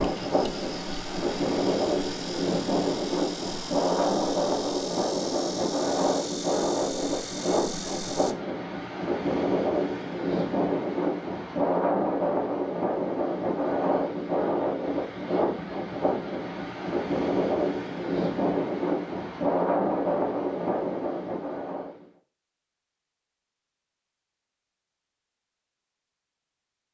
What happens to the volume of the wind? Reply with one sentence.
The loudness of the wind stays about the same.